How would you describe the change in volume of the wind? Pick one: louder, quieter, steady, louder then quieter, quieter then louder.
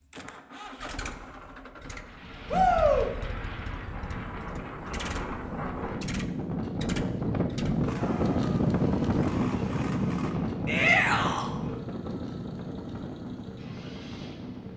louder then quieter.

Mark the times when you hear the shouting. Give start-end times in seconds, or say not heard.
2.5-3.1, 10.7-11.5.